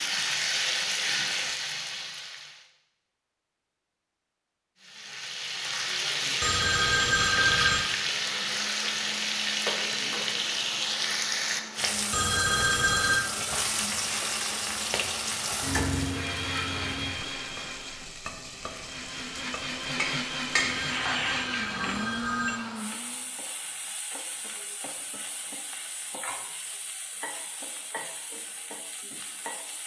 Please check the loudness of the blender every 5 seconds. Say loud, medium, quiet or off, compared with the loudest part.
off, medium, medium, loud, loud, off.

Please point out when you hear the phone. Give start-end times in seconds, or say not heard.
6.4-7.8, 12.1-13.2, 20.6-22.6.